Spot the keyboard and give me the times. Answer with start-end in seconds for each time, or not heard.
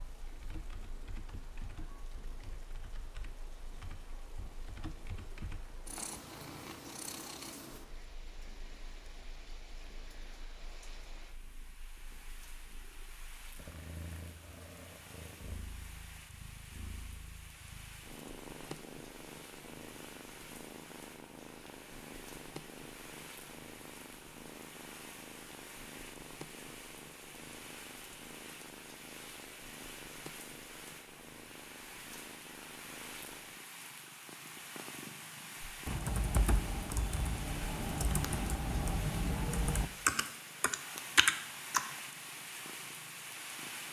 0.2-5.7, 35.6-41.9.